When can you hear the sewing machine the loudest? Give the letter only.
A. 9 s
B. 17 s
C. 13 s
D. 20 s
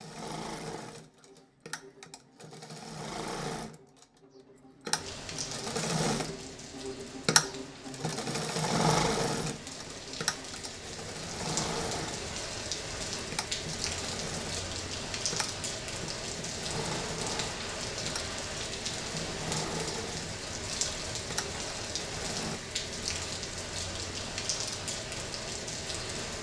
A.